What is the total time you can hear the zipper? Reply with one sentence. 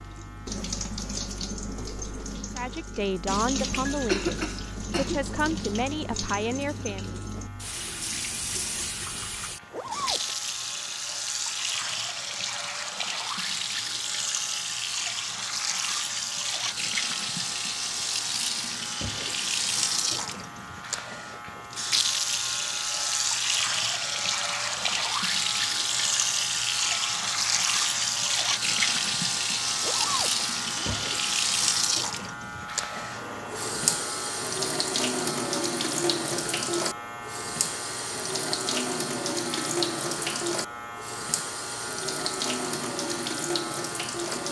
You can hear the zipper for 2 seconds altogether.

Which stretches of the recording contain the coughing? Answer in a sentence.
You can hear the coughing from 3.9 to 5.2 s.